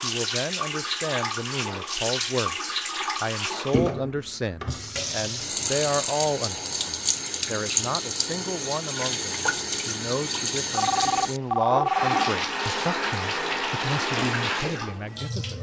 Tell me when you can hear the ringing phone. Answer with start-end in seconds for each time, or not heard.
10.7-12.3.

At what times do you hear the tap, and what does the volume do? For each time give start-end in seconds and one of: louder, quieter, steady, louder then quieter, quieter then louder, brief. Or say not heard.
0.0-15.5 steady.